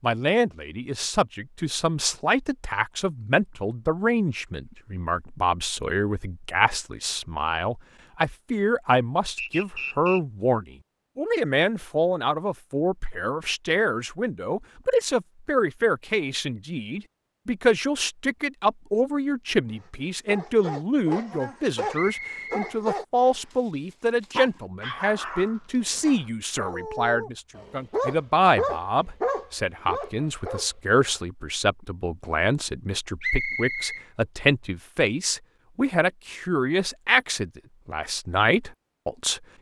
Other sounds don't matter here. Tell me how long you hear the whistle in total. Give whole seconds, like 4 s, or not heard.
3 s.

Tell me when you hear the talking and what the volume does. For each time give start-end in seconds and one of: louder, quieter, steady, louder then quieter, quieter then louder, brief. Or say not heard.
0.0-39.4 steady.